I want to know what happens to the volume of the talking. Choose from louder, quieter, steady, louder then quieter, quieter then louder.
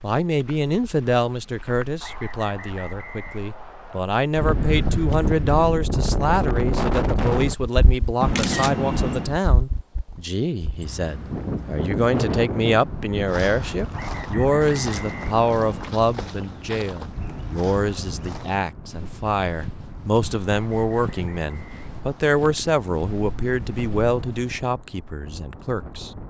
steady.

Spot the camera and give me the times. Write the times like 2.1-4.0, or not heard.
8.2-9.3, 14.5-15.9.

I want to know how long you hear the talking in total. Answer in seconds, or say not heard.
26 s.